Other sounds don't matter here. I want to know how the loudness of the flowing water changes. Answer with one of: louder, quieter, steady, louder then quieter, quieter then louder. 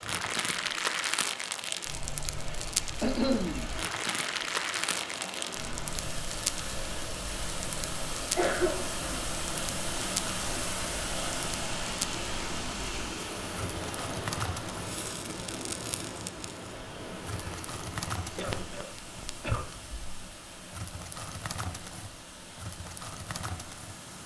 louder then quieter.